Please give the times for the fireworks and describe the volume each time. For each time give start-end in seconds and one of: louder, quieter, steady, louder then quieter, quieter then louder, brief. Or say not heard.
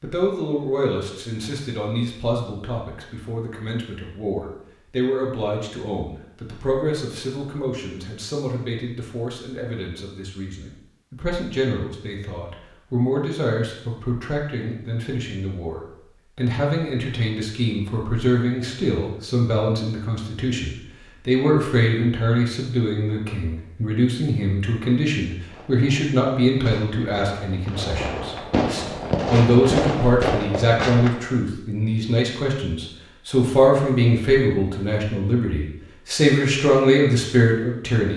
25.4-31.3 louder.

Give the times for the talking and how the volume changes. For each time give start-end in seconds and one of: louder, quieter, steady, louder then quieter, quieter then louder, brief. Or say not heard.
0.0-38.1 louder.